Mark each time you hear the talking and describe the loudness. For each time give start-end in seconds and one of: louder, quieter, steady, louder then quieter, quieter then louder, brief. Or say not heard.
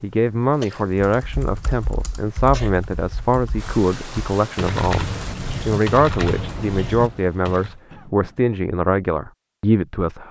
0.0-10.2 steady.